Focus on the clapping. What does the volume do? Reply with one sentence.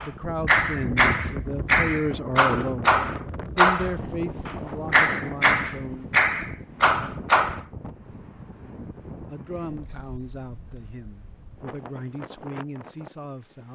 The loudness of the clapping stays about the same.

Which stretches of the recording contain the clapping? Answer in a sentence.
The clapping can be heard from 0.0 to 7.6 s.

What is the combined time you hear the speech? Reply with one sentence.
You can hear the speech for 11 seconds altogether.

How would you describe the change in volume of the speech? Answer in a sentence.
The loudness of the speech goes down.